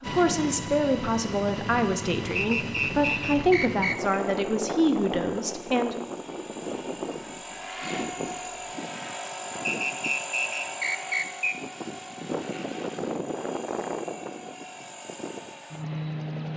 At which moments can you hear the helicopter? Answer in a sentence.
The helicopter can be heard from 0.0 to 16.5 s.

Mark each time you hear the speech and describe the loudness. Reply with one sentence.
You can hear the speech from 0.0 to 6.0 s, at a steady volume.